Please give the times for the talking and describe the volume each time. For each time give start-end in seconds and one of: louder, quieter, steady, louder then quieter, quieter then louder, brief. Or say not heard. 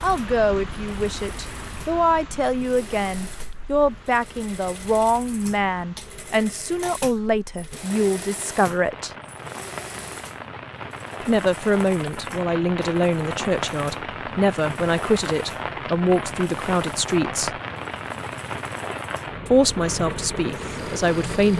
0.0-9.1 steady
11.2-17.6 steady
19.4-21.5 brief.